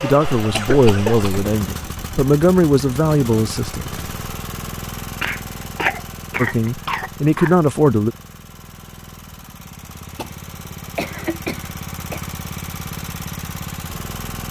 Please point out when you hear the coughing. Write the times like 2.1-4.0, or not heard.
0.3-1.3, 5.2-7.5, 10.2-12.2.